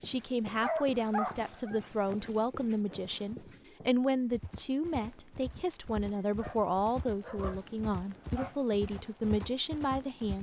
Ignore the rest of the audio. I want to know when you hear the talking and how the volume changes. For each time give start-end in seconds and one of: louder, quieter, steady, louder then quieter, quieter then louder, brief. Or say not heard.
0.0-10.3 steady.